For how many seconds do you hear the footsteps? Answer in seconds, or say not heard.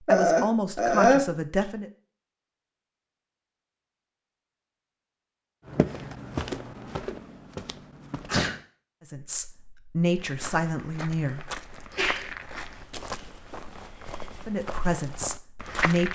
9 s.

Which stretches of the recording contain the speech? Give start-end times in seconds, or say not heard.
0.1-1.9, 9.1-11.5, 14.4-16.1.